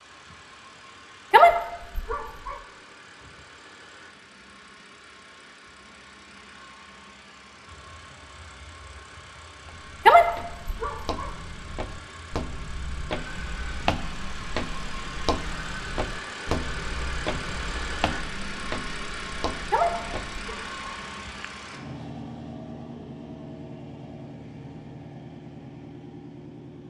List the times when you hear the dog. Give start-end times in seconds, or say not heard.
1.3-2.5, 10.1-11.3, 19.7-20.9.